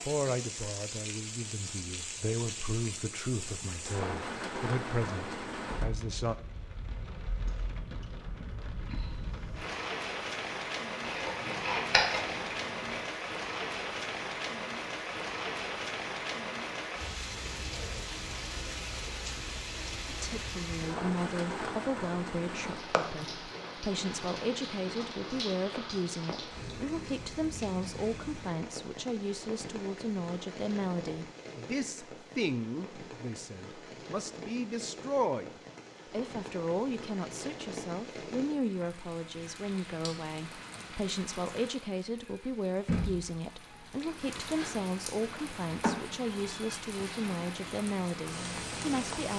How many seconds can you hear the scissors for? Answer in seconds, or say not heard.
2 s.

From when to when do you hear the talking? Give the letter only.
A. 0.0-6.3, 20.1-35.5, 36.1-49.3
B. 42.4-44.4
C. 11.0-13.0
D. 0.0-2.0
A.